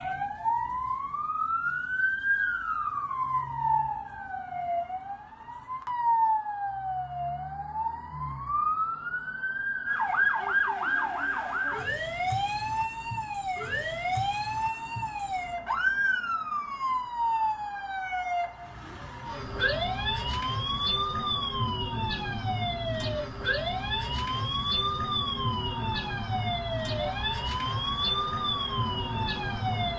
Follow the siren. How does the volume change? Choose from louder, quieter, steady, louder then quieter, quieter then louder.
steady.